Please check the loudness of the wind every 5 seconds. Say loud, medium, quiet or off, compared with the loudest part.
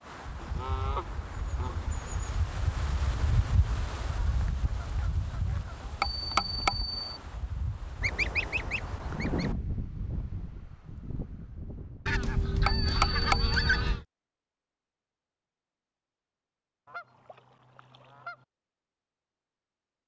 loud, loud, medium, off.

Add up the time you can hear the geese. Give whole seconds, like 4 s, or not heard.
9 s.